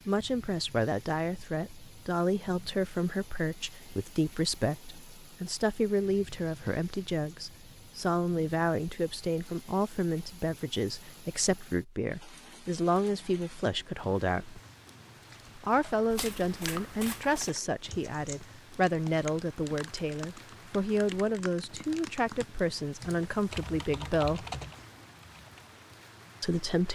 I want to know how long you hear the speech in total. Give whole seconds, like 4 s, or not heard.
24 s.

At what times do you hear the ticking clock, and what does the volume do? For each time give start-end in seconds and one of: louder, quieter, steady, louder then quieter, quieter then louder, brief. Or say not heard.
not heard.